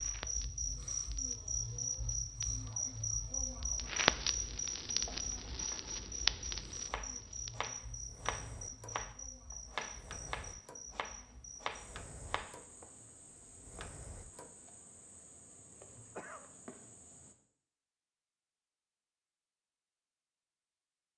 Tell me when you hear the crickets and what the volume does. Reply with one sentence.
You can hear the crickets from 0.0 to 17.4 s, getting quieter.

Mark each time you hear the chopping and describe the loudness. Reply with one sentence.
You can hear the chopping from 4.9 to 12.6 s, getting louder.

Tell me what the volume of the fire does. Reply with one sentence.
The loudness of the fire goes up, then down.